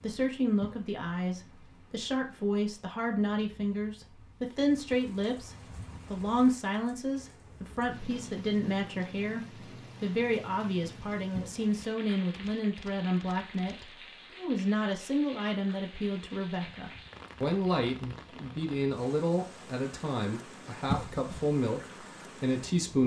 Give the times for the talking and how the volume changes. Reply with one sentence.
You can hear the talking from 0.0 to 23.0 s, at a steady volume.